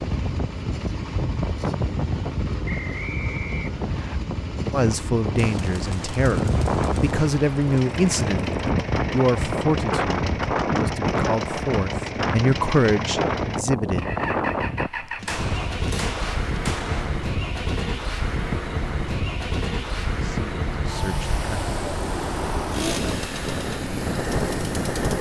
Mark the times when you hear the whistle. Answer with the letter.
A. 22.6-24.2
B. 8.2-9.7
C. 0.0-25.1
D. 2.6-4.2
D.